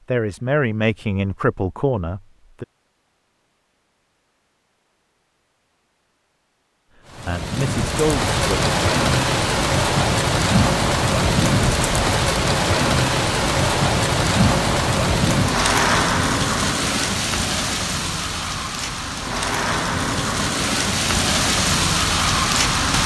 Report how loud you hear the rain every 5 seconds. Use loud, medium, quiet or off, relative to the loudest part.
off, loud, loud, loud, loud.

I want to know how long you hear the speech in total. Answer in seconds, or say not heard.
4 s.